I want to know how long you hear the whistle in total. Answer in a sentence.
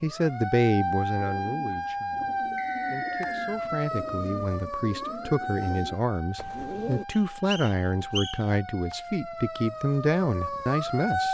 You can hear the whistle for 2 seconds altogether.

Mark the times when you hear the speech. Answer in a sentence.
You can hear the speech from 0.0 to 11.2 s.